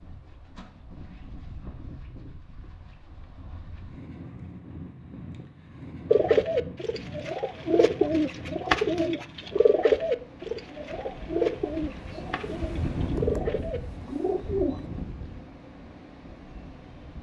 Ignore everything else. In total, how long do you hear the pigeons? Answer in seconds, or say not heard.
9 s.